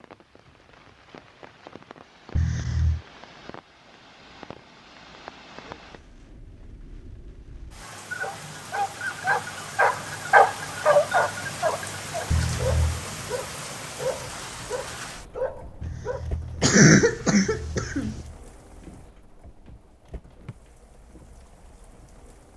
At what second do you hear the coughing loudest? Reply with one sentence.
The volume of the coughing peaks at 17 seconds.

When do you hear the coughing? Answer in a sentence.
The coughing can be heard from 2.4 to 3.0 s, from 12.3 to 13.1 s and from 15.8 to 18.1 s.